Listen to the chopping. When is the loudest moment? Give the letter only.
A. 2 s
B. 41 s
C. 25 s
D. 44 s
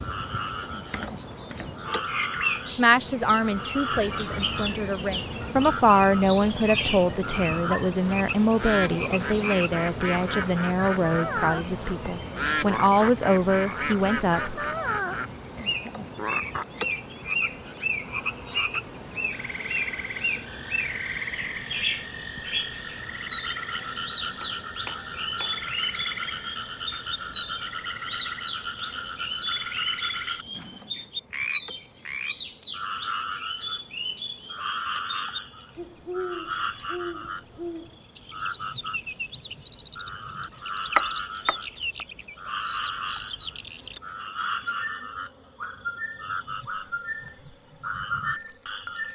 B.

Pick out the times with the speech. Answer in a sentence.
You can hear the speech from 2.8 to 14.6 s.